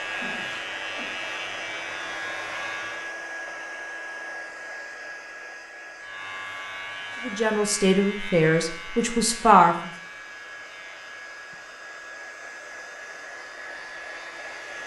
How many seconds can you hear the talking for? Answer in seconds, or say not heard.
3 s.